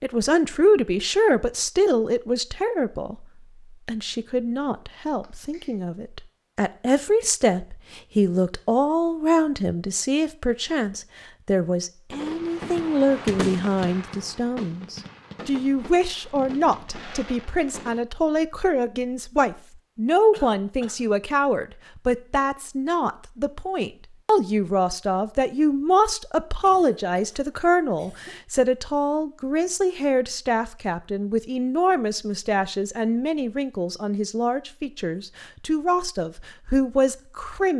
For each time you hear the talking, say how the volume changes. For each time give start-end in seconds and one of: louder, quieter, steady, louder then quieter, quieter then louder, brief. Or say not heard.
0.0-37.7 steady.